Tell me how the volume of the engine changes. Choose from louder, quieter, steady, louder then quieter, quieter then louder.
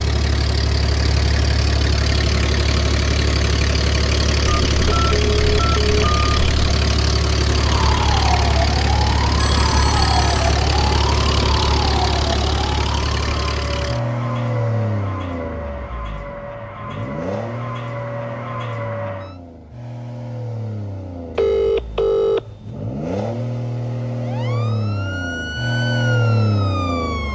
quieter then louder.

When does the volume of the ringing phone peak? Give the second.
22 s.